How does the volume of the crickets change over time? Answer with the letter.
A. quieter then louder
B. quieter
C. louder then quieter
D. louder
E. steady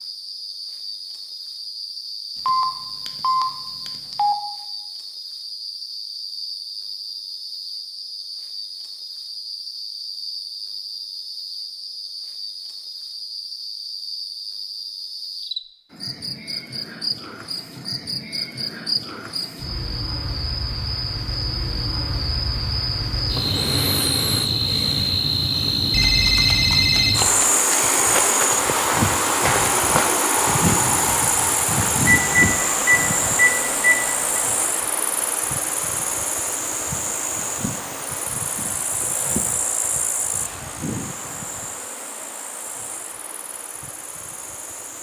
C.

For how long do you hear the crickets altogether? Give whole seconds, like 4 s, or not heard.
45 s.